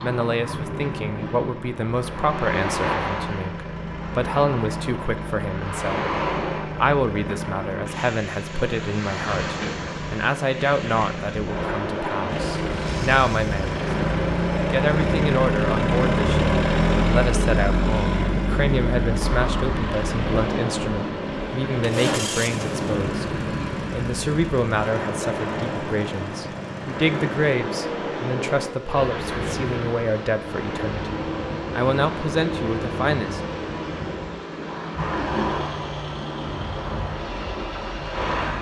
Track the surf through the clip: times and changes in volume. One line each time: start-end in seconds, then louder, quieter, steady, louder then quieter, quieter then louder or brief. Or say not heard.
0.0-38.5 steady.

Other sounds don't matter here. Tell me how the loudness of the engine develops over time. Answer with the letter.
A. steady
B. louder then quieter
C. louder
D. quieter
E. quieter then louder
B.